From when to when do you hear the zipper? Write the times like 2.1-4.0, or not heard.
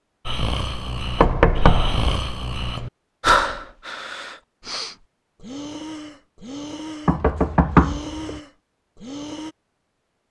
not heard.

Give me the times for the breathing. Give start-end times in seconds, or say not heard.
0.2-9.6.